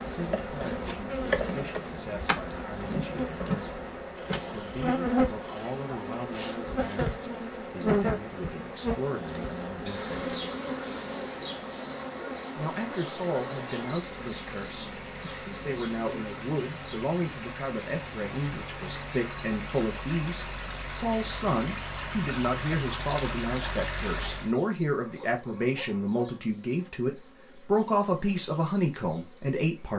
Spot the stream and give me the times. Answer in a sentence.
You can hear the stream from 0.1 to 24.6 s.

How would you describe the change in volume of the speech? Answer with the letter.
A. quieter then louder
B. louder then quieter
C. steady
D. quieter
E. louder
E.